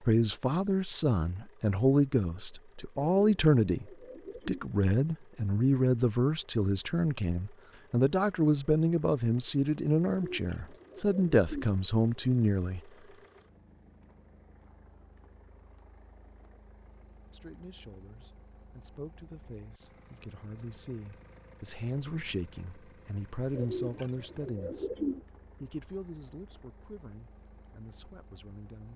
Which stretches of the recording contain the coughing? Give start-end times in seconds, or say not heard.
not heard.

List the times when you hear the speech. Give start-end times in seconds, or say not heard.
0.0-12.8, 17.3-24.9, 25.6-28.9.